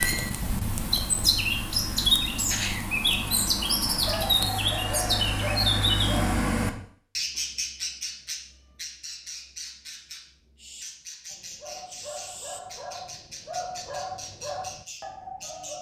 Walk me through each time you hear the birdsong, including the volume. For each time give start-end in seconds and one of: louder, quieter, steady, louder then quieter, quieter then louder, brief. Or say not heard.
0.0-15.7 quieter.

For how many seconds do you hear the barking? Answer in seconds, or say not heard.
7 s.